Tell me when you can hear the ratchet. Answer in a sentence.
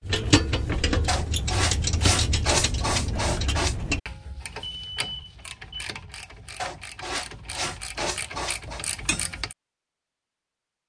The ratchet can be heard from 0.0 to 9.6 s.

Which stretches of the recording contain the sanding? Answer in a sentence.
You can hear the sanding from 1.1 to 3.8 s and from 6.5 to 8.8 s.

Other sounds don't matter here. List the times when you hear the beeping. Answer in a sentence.
You can hear the beeping from 4.5 to 5.9 s.